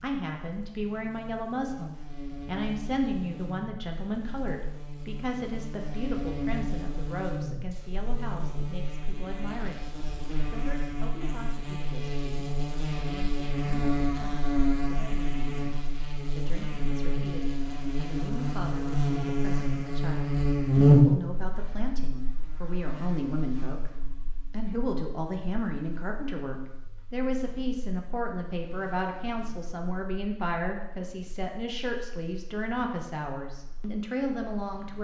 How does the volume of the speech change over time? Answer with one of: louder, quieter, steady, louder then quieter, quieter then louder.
quieter then louder.